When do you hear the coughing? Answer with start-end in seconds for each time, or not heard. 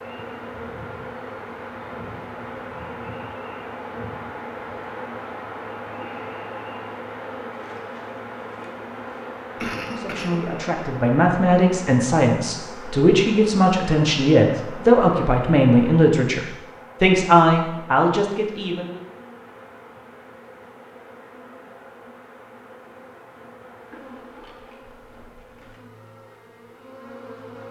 9.6-10.6.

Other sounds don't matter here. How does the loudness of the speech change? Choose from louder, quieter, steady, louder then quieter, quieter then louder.
steady.